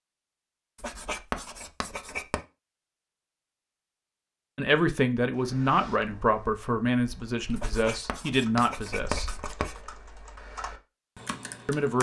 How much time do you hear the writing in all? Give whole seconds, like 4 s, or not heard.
4 s.